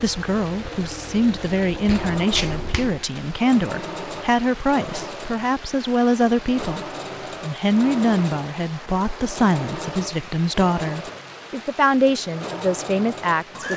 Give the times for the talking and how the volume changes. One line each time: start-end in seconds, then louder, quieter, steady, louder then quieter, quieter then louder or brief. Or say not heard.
0.0-13.7 steady.